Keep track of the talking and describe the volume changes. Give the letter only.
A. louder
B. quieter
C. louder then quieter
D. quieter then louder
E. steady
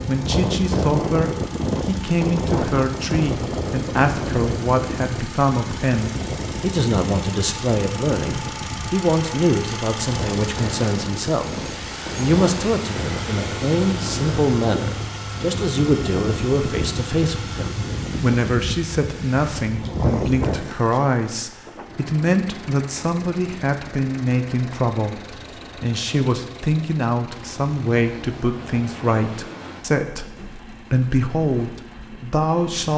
E.